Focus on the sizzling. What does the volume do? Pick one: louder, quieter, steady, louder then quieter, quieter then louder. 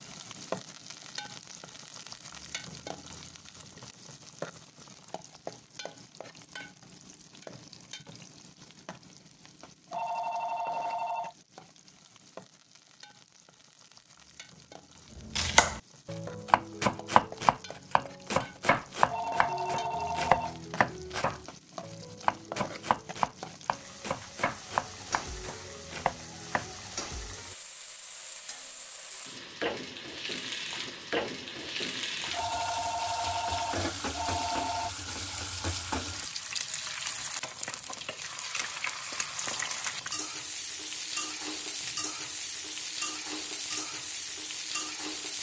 quieter then louder.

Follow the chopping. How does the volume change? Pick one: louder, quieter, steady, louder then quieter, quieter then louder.
quieter.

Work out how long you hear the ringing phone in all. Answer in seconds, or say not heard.
6 s.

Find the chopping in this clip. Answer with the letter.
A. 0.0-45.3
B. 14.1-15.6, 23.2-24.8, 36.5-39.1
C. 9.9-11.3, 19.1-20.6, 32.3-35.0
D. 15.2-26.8
D.